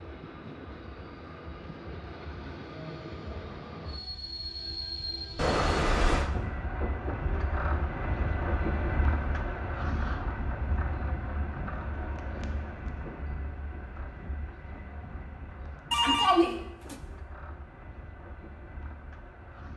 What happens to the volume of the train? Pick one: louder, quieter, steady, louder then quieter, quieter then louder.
louder then quieter.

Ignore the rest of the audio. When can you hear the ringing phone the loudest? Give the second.
16 s.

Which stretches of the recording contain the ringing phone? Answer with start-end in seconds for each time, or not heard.
5.3-6.3, 15.9-16.9.